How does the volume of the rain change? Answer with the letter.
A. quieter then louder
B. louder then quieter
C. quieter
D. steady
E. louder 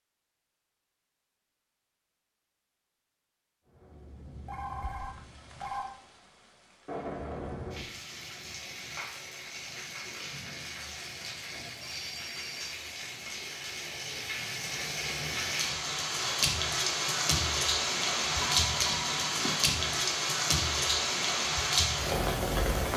E.